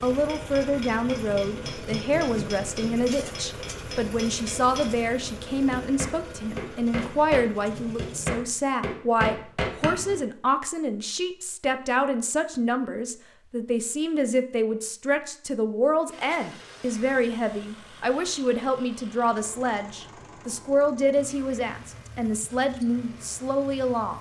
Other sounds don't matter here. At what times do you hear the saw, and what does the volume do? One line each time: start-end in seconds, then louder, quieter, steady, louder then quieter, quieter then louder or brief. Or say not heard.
not heard.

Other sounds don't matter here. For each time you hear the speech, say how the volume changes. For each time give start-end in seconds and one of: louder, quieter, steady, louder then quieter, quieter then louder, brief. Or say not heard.
0.0-24.1 steady.